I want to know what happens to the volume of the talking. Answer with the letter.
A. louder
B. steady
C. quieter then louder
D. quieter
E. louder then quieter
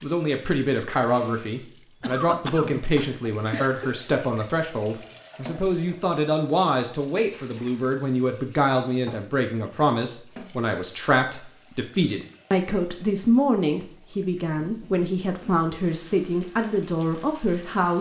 B.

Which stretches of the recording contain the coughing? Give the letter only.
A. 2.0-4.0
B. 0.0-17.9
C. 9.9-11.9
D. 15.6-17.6
A.